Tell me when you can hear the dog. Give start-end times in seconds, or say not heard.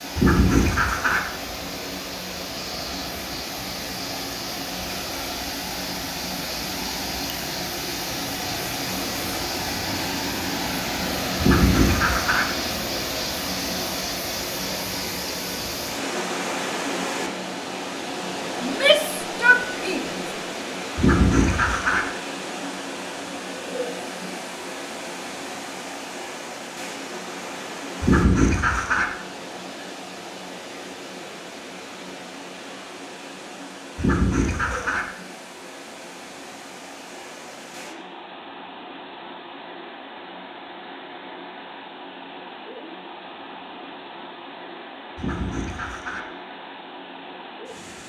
not heard.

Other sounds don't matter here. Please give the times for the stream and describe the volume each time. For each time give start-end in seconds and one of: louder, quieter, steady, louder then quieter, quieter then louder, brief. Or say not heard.
0.0-48.0 quieter.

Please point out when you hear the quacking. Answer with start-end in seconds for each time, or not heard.
0.1-1.2, 11.3-12.4, 20.9-22.0, 28.0-29.1, 34.0-35.0, 45.1-46.2.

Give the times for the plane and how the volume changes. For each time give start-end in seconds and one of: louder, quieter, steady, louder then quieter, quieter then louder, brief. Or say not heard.
not heard.